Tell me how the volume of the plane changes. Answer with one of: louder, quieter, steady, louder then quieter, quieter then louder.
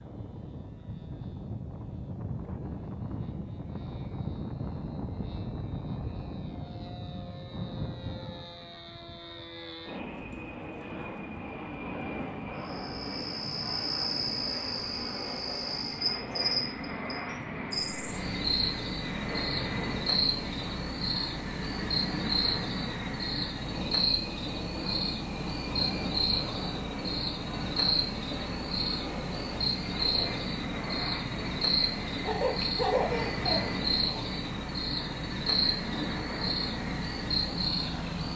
steady.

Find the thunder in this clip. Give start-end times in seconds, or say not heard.
not heard.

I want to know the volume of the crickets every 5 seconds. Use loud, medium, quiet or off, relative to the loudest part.
off, off, loud, loud, loud, loud, loud, loud.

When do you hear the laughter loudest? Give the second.
33 s.